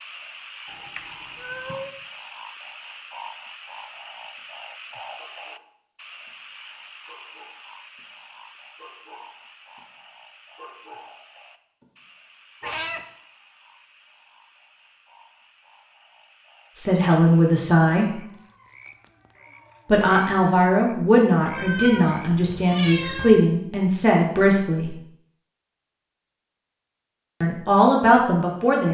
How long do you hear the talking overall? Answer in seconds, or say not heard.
8 s.